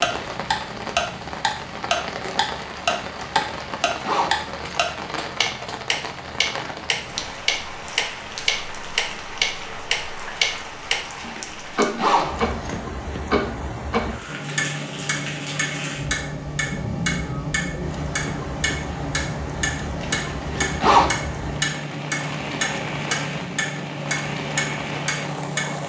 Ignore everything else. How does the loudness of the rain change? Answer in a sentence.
The volume of the rain stays about the same.